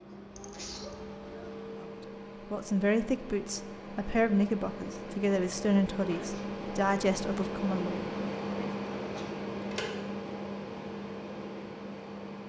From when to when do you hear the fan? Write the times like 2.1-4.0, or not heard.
0.0-12.4.